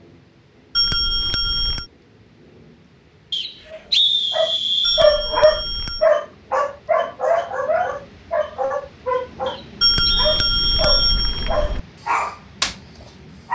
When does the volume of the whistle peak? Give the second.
4 s.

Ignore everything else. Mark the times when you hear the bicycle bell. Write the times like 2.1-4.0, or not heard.
0.8-1.9, 4.8-6.1, 9.8-11.8.